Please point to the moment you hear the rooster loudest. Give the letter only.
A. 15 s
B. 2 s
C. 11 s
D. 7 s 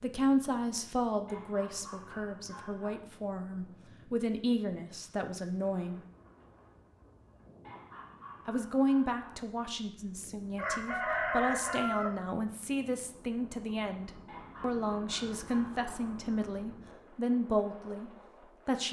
C.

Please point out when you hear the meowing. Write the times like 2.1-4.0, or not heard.
not heard.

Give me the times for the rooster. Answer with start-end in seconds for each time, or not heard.
9.9-12.4.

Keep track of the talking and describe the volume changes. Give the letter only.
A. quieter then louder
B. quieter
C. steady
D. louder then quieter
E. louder
C.